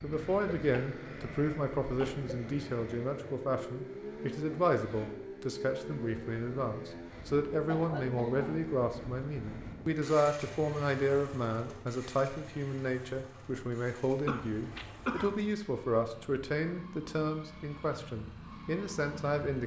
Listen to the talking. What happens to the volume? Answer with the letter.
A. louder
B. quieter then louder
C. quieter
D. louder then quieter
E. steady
E.